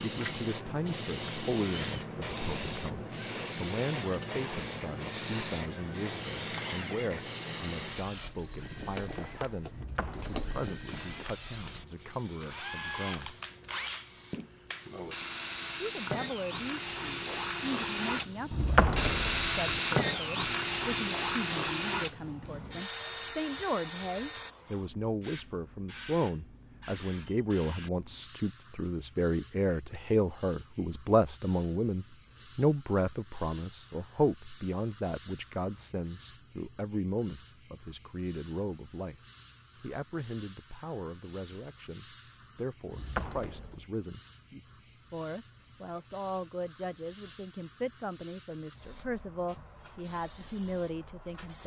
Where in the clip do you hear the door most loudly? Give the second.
19 s.